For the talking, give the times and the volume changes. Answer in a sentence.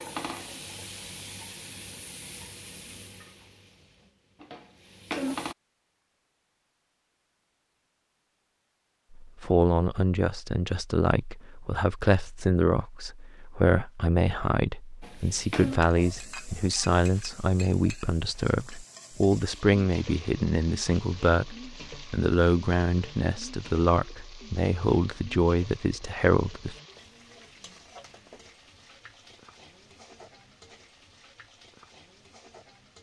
You can hear the talking from 9.2 to 26.8 s, at a steady volume.